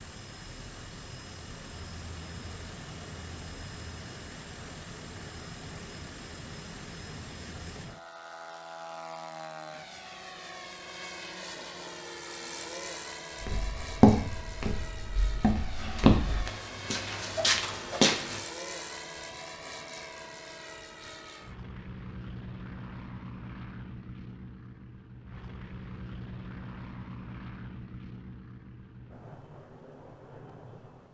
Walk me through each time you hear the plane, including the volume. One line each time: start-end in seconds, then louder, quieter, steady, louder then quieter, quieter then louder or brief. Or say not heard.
0.0-31.1 steady.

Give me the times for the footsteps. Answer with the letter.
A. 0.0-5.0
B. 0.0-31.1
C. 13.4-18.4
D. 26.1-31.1
C.